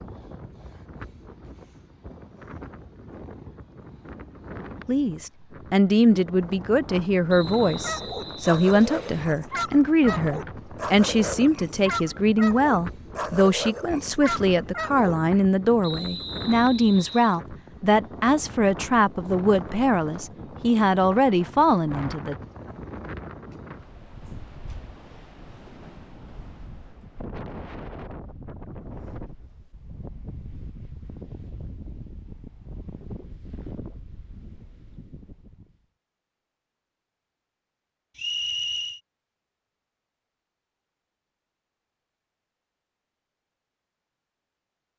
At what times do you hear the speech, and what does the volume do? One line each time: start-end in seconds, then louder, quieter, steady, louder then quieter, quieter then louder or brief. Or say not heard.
4.8-22.4 steady.